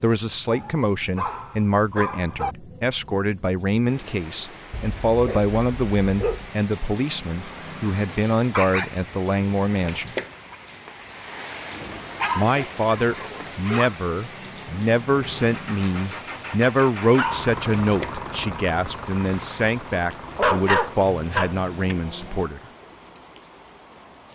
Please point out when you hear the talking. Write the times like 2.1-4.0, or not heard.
0.0-10.1, 12.3-22.6.